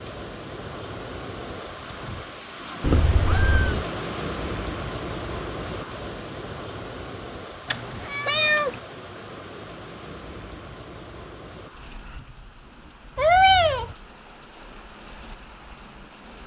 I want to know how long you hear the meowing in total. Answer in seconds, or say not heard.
3 s.